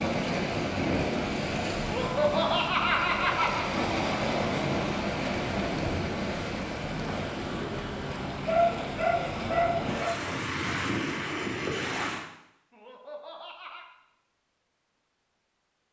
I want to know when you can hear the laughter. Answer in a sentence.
The laughter can be heard from 1.8 to 3.6 s and from 12.7 to 13.8 s.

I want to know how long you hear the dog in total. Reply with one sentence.
The dog can be heard for 2 seconds in total.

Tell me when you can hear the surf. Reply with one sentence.
You can hear the surf from 0.0 to 12.2 s.